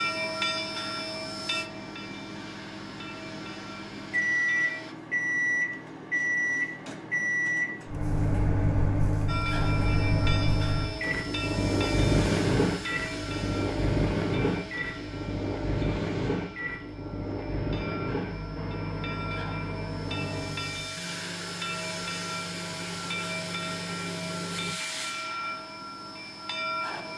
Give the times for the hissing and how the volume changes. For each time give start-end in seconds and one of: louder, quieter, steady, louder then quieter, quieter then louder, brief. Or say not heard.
0.0-5.0 quieter
9.2-27.1 quieter then louder.